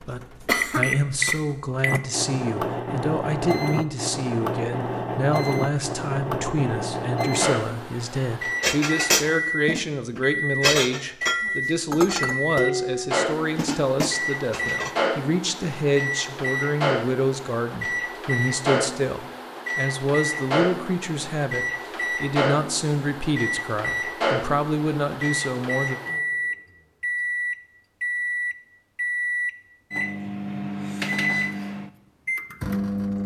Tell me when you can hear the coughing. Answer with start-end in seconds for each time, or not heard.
0.5-1.4.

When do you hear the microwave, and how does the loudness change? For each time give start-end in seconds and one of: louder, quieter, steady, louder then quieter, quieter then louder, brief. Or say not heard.
0.0-33.2 steady.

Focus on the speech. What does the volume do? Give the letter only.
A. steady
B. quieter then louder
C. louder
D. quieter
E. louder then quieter
A.